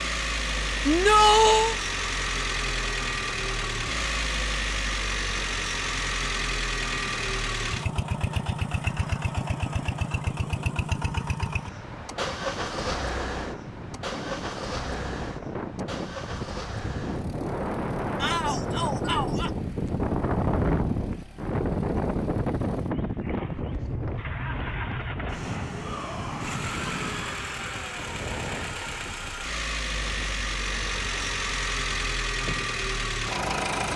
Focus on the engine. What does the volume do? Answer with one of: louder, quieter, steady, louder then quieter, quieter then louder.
quieter then louder.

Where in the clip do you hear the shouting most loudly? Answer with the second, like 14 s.
1 s.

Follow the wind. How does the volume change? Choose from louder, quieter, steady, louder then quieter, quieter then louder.
louder then quieter.